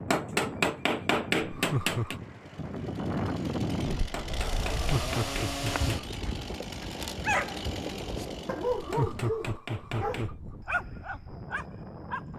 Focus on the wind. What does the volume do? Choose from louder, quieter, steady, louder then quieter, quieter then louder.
louder then quieter.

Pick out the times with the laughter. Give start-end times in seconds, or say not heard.
1.5-2.2, 4.7-6.2, 8.8-10.6.